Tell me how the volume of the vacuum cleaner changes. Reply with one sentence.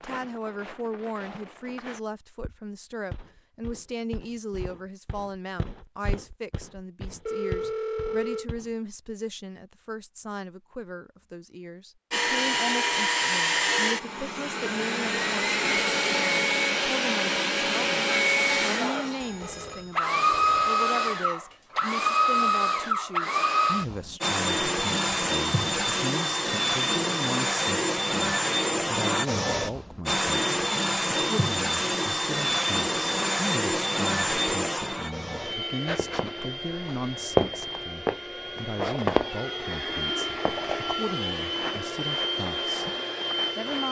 The volume of the vacuum cleaner goes down.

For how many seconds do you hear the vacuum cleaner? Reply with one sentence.
You can hear the vacuum cleaner for 32 seconds altogether.